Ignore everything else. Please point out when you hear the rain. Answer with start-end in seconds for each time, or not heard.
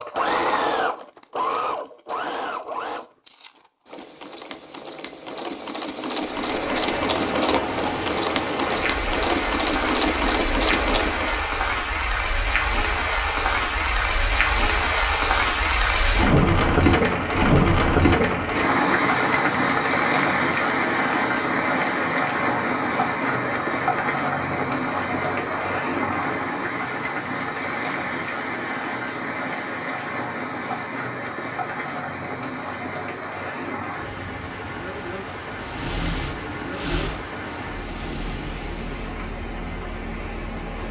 6.2-40.8.